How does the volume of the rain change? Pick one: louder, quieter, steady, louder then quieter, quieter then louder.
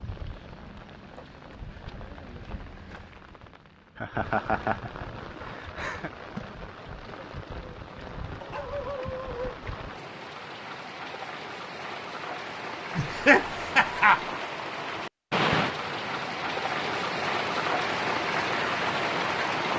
louder.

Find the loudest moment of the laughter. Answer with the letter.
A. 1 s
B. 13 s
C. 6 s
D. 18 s
B.